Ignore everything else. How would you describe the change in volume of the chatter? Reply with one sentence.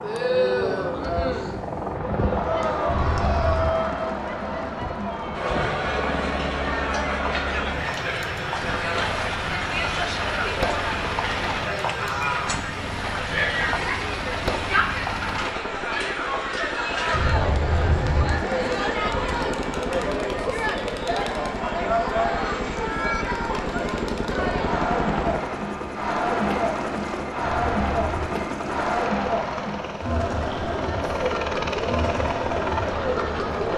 The loudness of the chatter stays about the same.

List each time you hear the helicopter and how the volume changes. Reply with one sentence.
The helicopter can be heard from 0.0 to 33.7 s, at a steady volume.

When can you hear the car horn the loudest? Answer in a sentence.
The loudest moment of the car horn is at 18 seconds.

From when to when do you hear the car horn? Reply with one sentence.
The car horn can be heard from 2.9 to 3.8 s, from 17.1 to 18.5 s and from 27.4 to 28.2 s.